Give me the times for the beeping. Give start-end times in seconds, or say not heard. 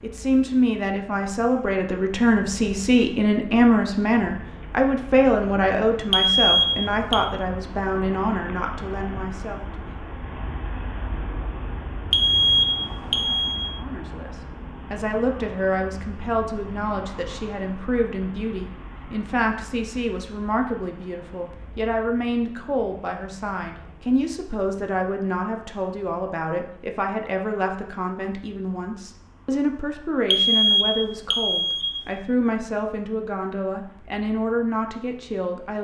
6.1-7.2, 12.1-13.7, 30.3-32.0.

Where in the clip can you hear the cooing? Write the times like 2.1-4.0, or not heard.
not heard.